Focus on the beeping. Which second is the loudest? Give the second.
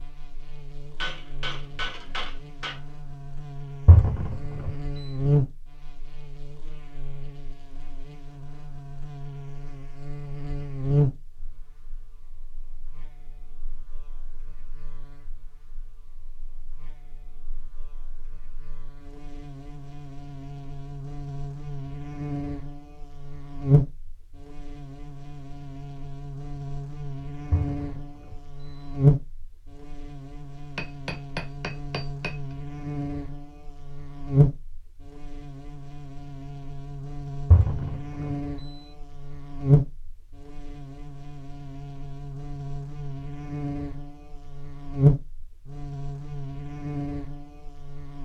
4 s.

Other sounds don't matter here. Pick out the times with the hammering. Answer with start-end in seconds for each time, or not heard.
1.0-2.8, 30.8-32.4.